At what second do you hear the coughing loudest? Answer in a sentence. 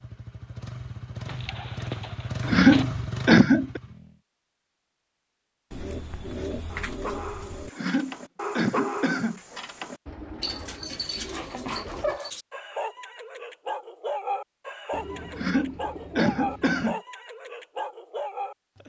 The volume of the coughing peaks at 3 seconds.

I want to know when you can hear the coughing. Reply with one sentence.
You can hear the coughing from 2.5 to 3.8 s, from 7.7 to 9.4 s and from 15.3 to 17.0 s.